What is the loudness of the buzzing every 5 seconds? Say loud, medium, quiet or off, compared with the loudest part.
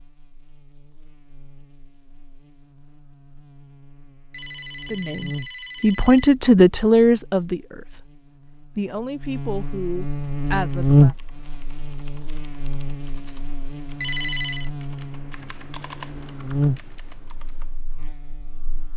quiet, quiet, loud, medium.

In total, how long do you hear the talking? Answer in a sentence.
The talking can be heard for 6 seconds in total.